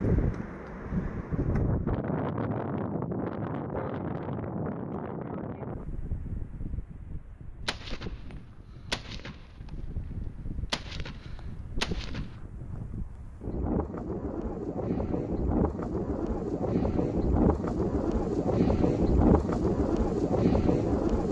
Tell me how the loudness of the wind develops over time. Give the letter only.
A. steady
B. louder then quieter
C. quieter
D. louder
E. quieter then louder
E.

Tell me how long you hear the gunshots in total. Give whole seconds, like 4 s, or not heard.
5 s.